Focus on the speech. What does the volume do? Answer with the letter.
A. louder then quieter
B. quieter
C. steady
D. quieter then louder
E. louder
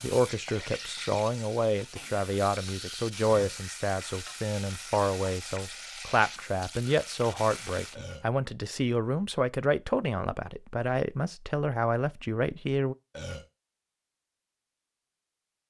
C.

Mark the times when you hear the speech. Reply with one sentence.
The speech can be heard from 0.0 to 12.9 s.